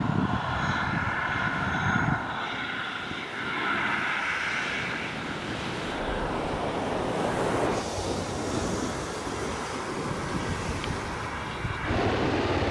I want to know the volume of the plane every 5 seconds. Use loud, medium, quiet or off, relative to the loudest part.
loud, medium, loud.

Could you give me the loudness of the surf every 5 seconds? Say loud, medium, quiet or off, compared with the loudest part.
medium, loud, medium.